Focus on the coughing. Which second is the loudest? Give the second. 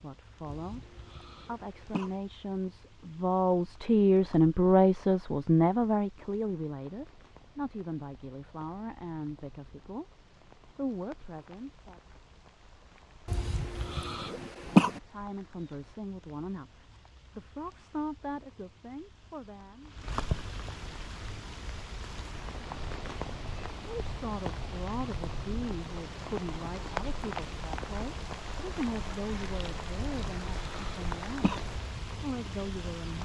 15 s.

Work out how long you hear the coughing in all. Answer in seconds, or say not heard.
5 s.